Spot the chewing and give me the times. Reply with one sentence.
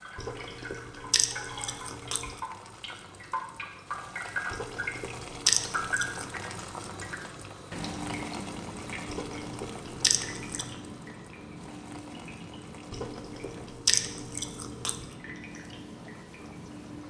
The chewing can be heard from 0.1 to 2.4 s, from 4.5 to 6.3 s, from 9.1 to 10.7 s and from 12.9 to 15.1 s.